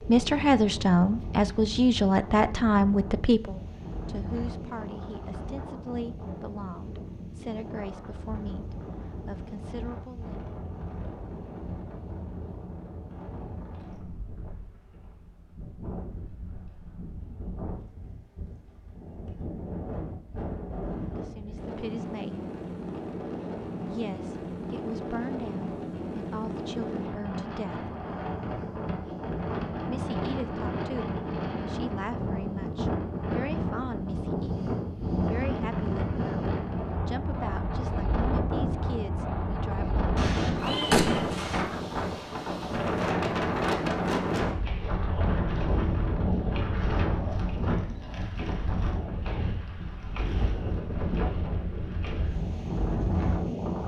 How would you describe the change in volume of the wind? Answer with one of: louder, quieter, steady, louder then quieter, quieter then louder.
louder.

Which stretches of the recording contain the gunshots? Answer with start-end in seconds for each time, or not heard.
40.1-41.6.